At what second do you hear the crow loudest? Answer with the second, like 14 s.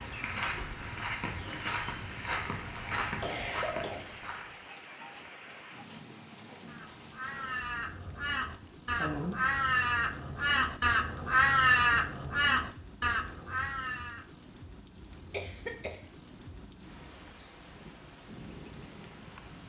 12 s.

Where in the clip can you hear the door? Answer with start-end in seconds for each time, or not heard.
not heard.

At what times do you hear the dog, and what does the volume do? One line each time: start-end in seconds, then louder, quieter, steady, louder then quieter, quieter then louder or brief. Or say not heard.
not heard.